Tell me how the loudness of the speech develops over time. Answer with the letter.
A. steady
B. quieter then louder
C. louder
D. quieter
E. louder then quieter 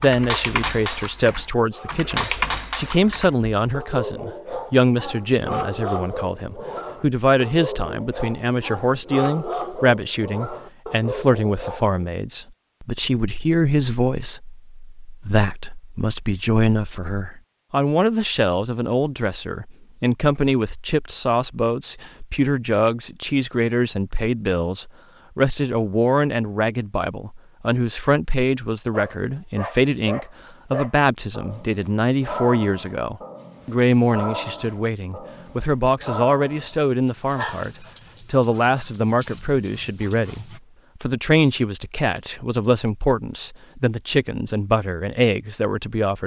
A.